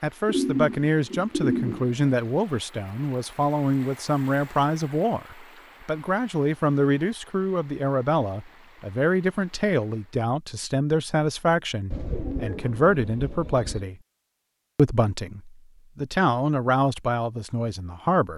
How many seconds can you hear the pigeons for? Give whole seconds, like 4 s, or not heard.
4 s.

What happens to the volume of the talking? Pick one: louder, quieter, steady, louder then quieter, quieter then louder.
steady.